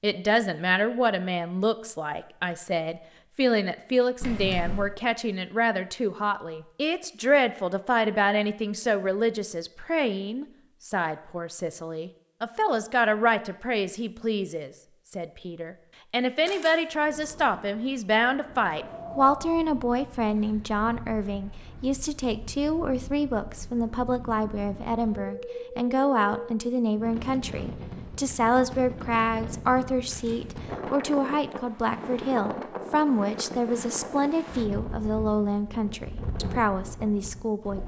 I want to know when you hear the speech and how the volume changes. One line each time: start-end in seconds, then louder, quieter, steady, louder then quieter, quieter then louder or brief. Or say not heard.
0.0-37.8 steady.